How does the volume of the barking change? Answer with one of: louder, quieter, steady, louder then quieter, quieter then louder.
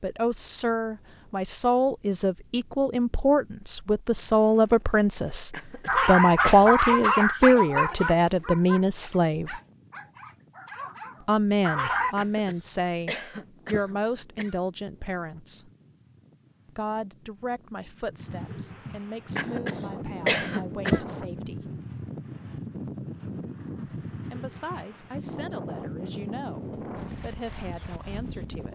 quieter then louder.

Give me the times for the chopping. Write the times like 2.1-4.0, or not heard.
not heard.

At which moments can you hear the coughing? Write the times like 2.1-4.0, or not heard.
5.5-6.6, 12.2-14.6, 19.4-21.1.